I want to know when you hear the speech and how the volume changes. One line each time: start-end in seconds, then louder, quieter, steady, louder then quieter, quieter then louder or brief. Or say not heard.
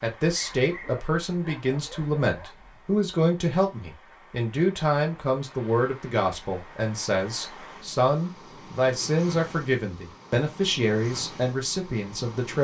0.0-12.5 steady.